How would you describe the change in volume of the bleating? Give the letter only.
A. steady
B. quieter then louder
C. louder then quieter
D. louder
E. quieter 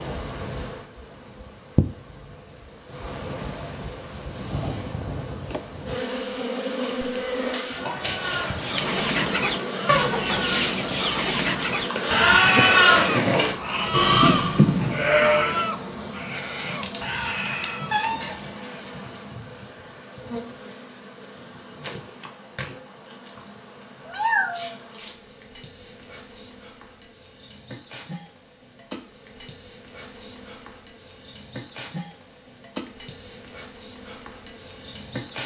D.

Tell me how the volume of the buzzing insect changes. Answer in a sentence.
The loudness of the buzzing insect goes down.